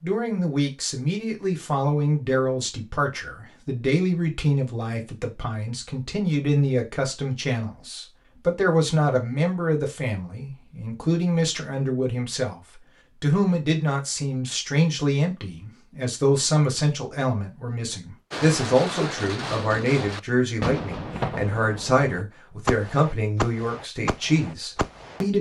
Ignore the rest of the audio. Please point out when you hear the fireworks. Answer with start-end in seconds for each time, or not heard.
18.3-25.2.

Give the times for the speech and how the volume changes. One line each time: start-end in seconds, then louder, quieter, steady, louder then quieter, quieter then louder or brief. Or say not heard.
0.0-25.3 steady.